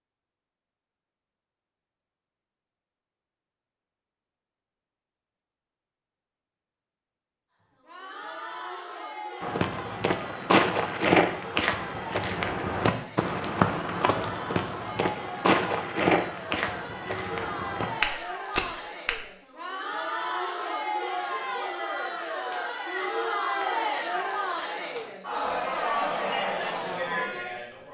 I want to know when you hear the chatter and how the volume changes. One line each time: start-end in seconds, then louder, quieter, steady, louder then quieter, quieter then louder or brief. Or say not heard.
7.8-27.8 louder.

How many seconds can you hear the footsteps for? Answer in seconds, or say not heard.
10 s.